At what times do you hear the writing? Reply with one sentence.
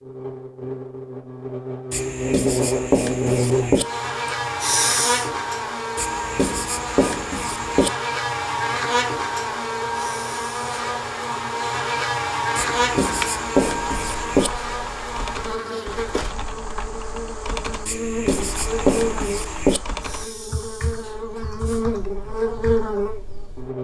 You can hear the writing from 1.9 to 3.9 s, from 6.0 to 7.9 s, from 12.6 to 14.5 s and from 17.9 to 19.8 s.